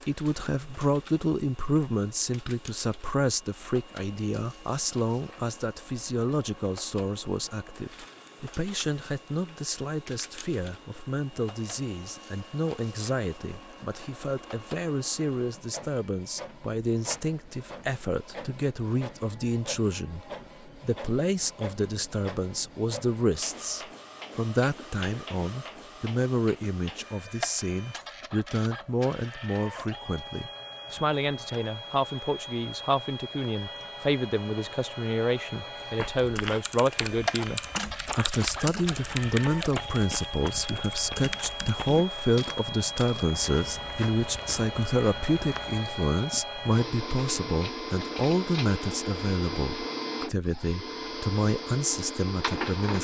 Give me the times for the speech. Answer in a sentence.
The speech can be heard from 0.1 to 52.9 s.